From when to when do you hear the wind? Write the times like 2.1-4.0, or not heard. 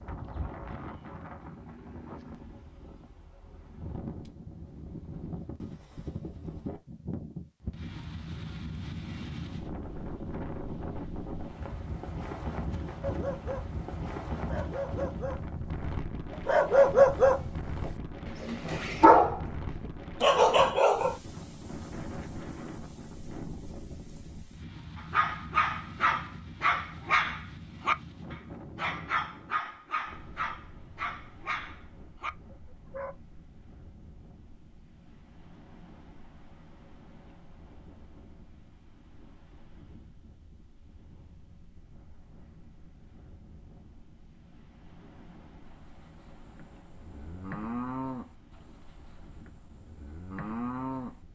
0.0-51.2.